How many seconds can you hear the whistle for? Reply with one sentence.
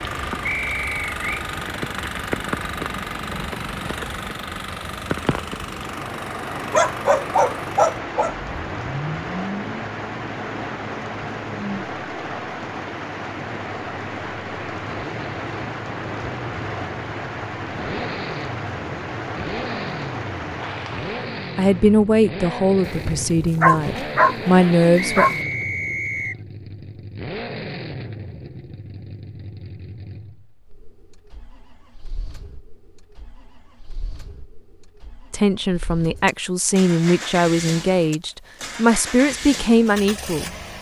You can hear the whistle for 2 seconds altogether.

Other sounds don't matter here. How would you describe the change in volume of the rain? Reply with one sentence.
The loudness of the rain stays about the same.